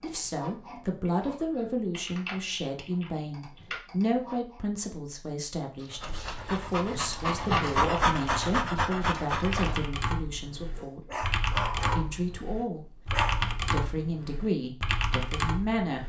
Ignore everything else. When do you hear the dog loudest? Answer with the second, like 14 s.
8 s.